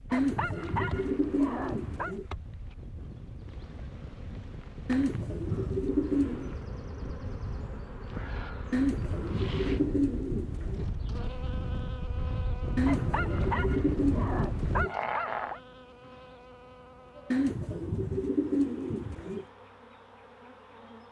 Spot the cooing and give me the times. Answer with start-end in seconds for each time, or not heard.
0.1-2.2, 4.8-6.5, 8.7-10.8, 12.8-14.9, 17.3-19.4.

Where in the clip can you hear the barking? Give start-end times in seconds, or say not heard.
0.1-2.1, 12.8-15.6.